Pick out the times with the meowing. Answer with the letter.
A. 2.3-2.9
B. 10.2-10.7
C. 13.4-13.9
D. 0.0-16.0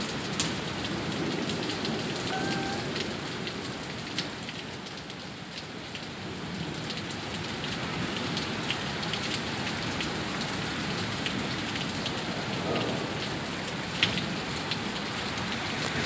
A.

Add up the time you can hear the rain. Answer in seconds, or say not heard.
16 s.